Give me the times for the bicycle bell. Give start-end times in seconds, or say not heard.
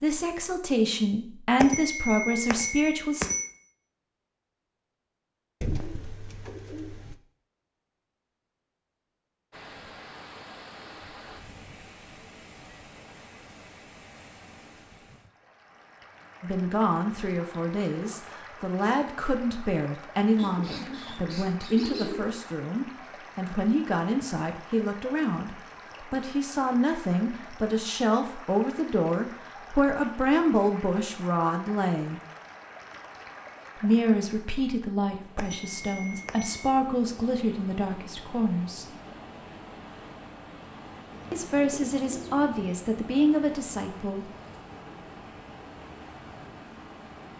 1.6-3.5, 35.4-36.6.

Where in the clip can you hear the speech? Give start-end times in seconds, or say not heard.
0.0-3.3, 16.4-32.2, 33.8-38.9, 41.3-44.2.